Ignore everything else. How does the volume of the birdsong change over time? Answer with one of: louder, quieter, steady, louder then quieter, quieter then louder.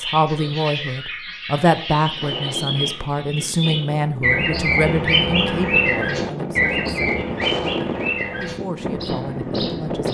louder then quieter.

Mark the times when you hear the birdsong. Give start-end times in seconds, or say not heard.
0.0-10.0.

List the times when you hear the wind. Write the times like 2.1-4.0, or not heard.
2.0-10.0.